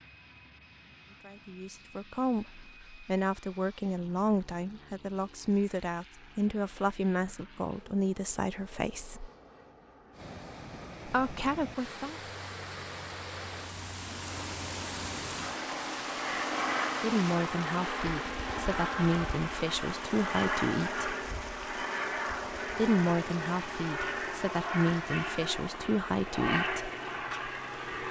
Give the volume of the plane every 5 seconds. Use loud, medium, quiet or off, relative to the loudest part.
quiet, quiet, quiet, loud, loud, loud.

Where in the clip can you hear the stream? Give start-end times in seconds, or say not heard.
10.1-28.0.